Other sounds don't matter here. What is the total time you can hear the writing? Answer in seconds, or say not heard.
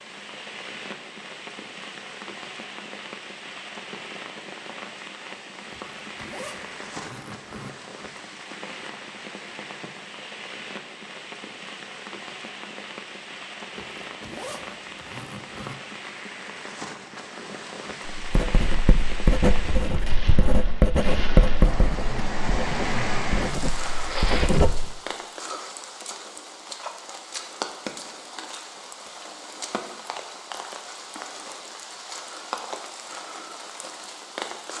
7 s.